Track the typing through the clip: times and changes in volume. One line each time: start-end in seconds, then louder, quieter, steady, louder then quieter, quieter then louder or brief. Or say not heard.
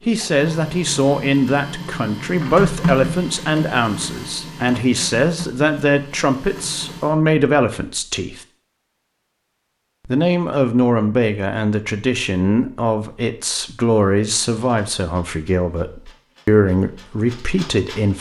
not heard.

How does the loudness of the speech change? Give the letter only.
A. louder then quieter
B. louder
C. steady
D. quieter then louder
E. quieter
C.